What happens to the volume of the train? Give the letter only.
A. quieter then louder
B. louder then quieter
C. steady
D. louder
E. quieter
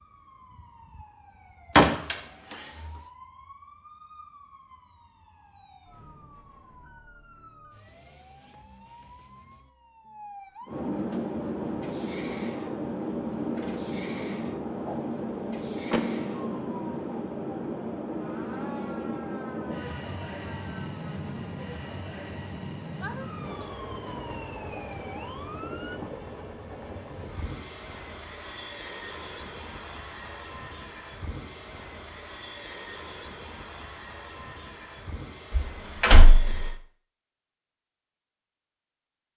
E.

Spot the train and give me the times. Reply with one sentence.
The train can be heard from 10.7 to 36.8 s.